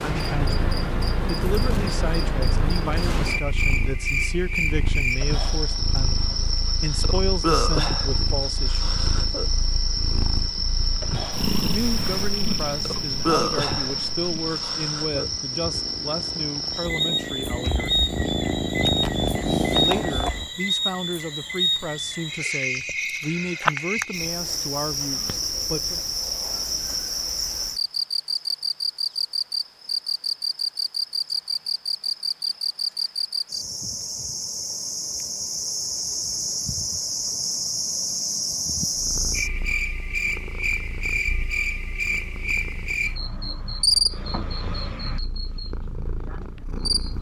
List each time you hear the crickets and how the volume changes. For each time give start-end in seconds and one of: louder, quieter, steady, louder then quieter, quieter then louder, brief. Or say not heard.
0.0-47.1 steady.